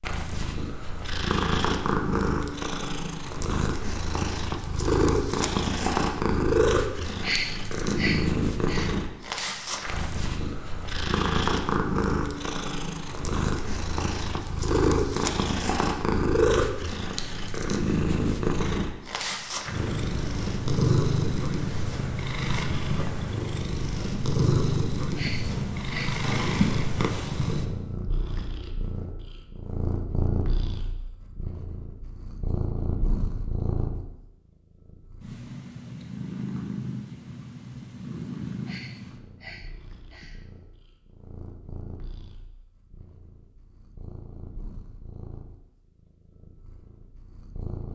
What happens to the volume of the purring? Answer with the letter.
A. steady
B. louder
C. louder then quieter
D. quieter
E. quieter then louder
D.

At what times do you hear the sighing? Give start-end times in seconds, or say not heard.
7.2-8.9, 25.1-26.2, 38.6-40.5.